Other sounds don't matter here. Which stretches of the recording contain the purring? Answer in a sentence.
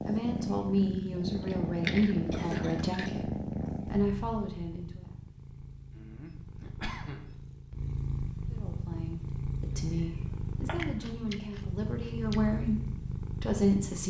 The purring can be heard from 0.0 to 14.0 s.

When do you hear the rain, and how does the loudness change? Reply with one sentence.
The rain can't be heard in this clip.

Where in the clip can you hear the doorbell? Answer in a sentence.
The doorbell can't be heard in this clip.